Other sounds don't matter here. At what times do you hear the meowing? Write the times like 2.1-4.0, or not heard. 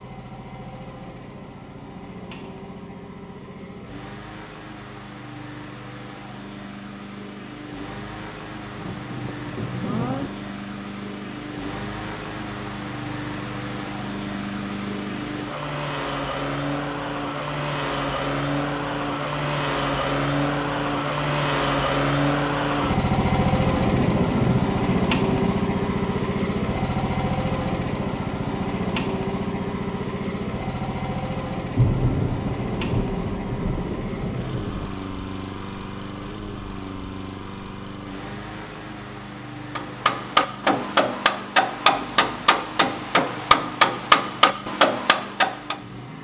not heard.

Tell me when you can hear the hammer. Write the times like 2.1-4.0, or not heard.
39.8-45.8.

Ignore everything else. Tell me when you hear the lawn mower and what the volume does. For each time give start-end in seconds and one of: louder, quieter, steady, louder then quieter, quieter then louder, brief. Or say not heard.
0.0-46.1 louder then quieter.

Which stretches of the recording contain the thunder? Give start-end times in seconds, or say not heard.
8.8-10.3, 23.8-25.6, 31.8-34.9.